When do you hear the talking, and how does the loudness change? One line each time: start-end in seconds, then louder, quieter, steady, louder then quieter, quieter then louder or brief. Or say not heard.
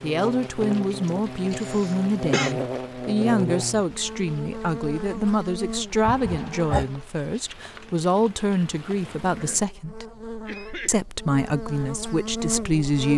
0.0-10.1 steady
10.8-13.1 brief.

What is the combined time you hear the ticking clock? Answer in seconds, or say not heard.
not heard.